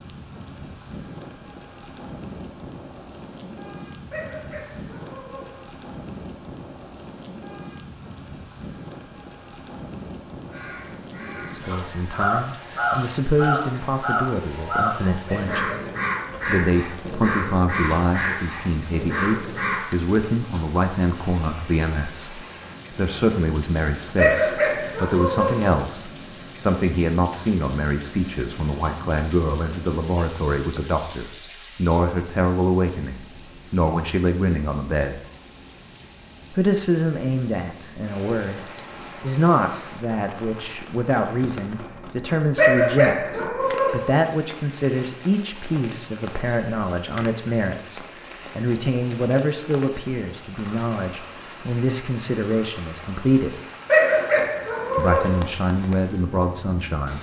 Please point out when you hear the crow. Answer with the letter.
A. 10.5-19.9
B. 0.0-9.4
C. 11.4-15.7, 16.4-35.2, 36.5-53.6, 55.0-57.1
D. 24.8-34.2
A.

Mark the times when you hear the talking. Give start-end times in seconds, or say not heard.
11.4-15.7, 16.4-35.2, 36.5-53.6, 55.0-57.1.